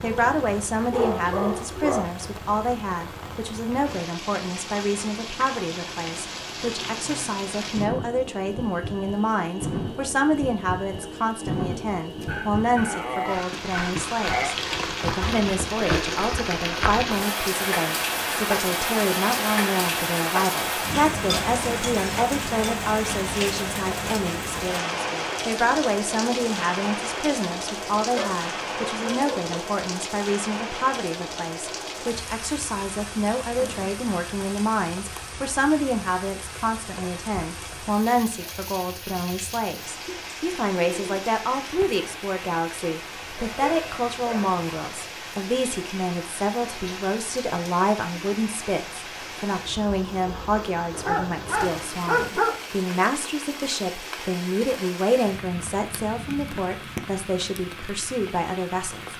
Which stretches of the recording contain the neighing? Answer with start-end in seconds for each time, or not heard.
not heard.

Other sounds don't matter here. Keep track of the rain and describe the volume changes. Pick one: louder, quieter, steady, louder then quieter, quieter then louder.
louder then quieter.